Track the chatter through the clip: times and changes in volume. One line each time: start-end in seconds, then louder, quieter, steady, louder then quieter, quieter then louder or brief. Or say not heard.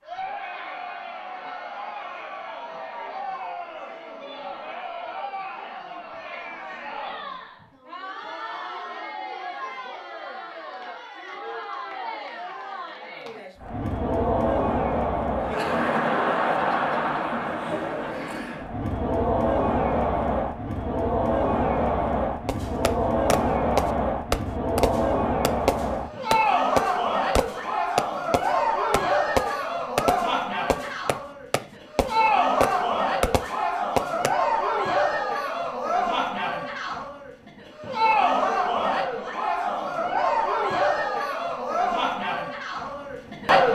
0.0-43.6 louder.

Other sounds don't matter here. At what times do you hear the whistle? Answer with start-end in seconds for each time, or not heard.
not heard.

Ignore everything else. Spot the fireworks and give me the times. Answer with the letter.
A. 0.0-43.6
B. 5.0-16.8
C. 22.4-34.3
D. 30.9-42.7
C.